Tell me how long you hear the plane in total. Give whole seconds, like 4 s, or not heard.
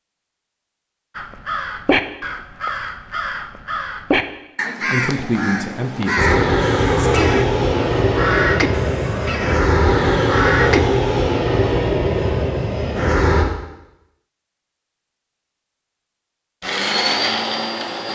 9 s.